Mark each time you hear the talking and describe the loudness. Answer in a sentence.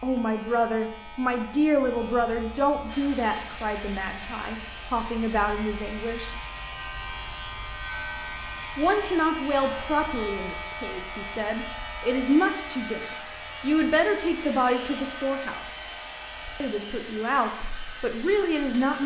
You can hear the talking from 0.0 to 6.3 s, getting quieter then louder; from 8.8 to 15.7 s, getting quieter then louder; and briefly from 16.6 to 19.0 s.